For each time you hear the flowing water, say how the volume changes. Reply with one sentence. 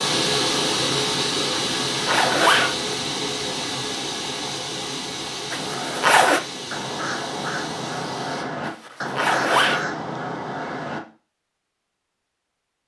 You can hear the flowing water from 0.0 to 8.4 s, getting quieter.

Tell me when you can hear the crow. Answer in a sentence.
The crow can be heard from 5.5 to 11.0 s.